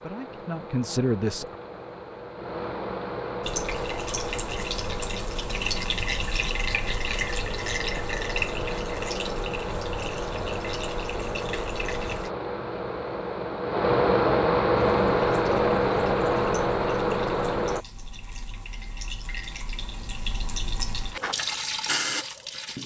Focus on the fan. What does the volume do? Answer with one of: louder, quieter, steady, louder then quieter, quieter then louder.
louder.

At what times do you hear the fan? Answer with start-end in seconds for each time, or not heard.
0.0-17.9.